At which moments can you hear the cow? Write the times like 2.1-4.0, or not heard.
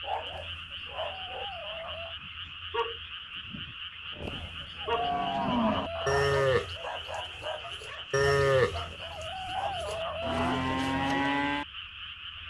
4.2-11.7.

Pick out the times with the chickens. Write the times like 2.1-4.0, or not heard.
0.3-2.1, 4.2-6.2, 8.7-10.7.